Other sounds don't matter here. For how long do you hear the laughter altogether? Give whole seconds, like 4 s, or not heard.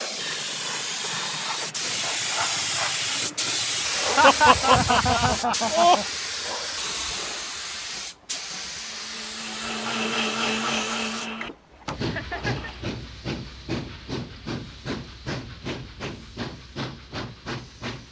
3 s.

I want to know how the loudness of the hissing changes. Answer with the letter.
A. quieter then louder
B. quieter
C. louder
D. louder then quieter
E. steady
B.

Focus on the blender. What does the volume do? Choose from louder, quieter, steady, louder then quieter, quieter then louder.
louder then quieter.